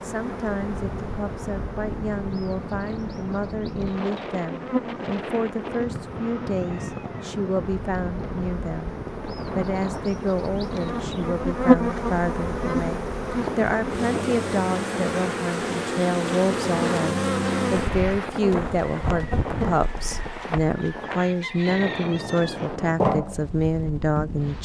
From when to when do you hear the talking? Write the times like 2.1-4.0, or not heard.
0.0-24.6.